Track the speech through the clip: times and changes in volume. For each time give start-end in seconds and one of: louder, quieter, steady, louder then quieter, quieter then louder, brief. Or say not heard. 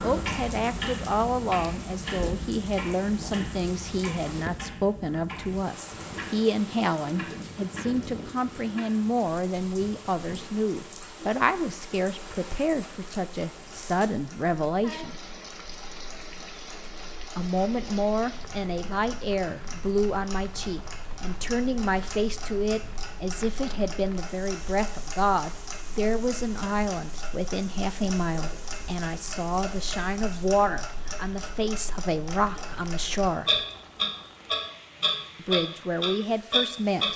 0.0-15.2 steady
17.4-33.6 steady
35.4-37.1 brief.